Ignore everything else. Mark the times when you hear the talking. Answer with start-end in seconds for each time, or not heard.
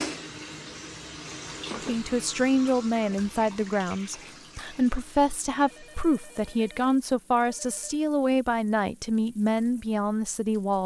1.8-10.8.